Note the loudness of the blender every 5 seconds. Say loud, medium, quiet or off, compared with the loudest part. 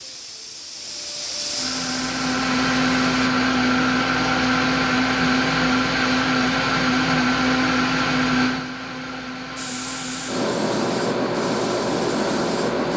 loud, loud, medium.